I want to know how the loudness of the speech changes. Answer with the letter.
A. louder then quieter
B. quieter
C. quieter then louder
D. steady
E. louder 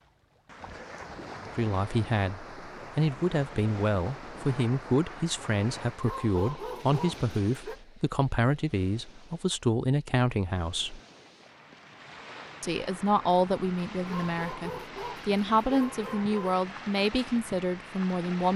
D.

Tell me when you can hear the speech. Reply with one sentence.
The speech can be heard from 1.4 to 11.0 s and from 12.6 to 18.5 s.